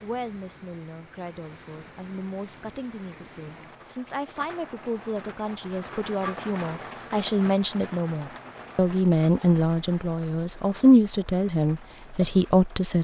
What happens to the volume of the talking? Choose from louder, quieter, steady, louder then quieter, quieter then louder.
louder.